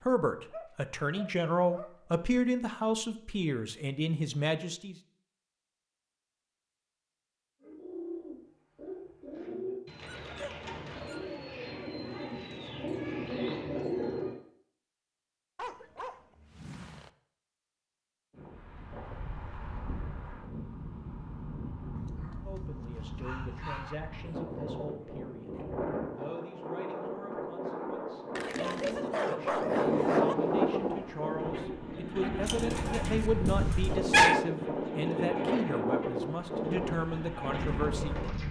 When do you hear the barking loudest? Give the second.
34 s.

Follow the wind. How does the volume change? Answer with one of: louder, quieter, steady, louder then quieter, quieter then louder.
louder.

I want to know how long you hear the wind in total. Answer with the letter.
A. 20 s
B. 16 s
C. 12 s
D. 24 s
A.